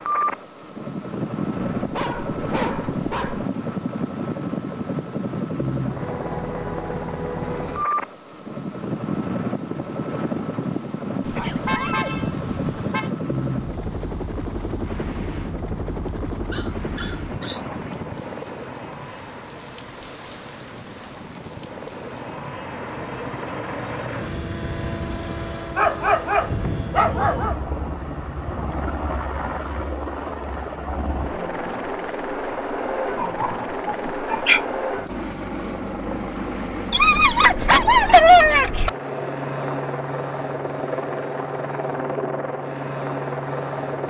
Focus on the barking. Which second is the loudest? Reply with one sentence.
The volume of the barking peaks at 38 seconds.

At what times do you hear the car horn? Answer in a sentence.
You can hear the car horn from 11.4 to 13.1 s.